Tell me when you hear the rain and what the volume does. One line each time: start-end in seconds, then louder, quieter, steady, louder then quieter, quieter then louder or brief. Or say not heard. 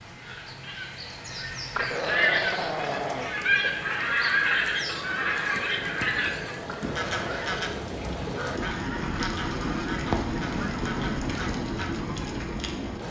0.0-13.0 louder.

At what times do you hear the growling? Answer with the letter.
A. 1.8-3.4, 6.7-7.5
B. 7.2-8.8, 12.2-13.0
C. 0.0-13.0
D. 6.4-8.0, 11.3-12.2
A.